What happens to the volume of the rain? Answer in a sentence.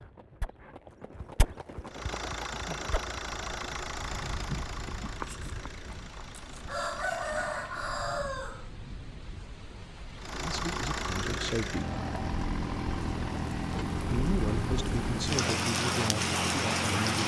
The volume of the rain goes up.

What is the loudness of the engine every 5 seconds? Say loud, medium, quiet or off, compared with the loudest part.
loud, quiet, loud, loud.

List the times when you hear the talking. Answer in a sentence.
The talking can be heard from 10.3 to 12.0 s and from 13.8 to 17.2 s.